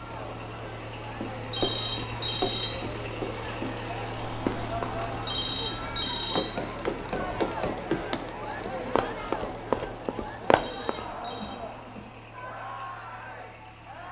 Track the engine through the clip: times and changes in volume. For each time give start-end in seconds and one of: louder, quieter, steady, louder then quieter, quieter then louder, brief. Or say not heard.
0.0-14.0 quieter.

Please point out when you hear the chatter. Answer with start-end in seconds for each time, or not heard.
0.0-14.0.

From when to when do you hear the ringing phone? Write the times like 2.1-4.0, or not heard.
1.5-2.8, 5.2-6.5, 10.6-11.6.